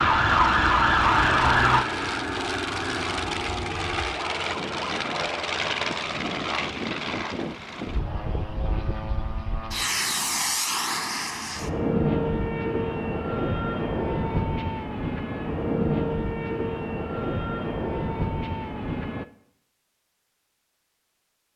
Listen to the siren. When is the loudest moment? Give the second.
1 s.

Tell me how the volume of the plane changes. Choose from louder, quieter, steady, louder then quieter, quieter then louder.
steady.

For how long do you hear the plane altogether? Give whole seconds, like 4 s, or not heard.
19 s.